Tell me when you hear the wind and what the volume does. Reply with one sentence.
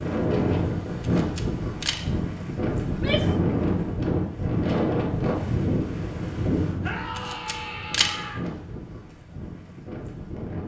You can hear the wind from 0.0 to 10.6 s, getting quieter.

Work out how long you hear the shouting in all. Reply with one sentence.
The shouting can be heard for 2 seconds in total.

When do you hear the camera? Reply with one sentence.
The camera can be heard from 1.0 to 2.0 s and from 7.2 to 8.2 s.